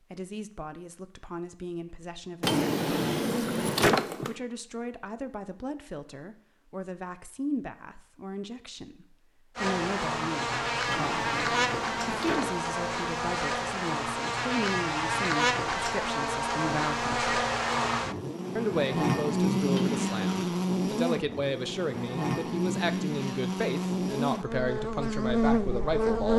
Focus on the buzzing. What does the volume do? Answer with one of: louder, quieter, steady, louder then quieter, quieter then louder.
steady.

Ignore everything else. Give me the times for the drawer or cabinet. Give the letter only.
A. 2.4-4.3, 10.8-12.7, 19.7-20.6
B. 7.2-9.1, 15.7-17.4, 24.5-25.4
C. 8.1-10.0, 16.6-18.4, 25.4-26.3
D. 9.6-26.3
A.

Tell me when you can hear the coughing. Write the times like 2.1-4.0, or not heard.
not heard.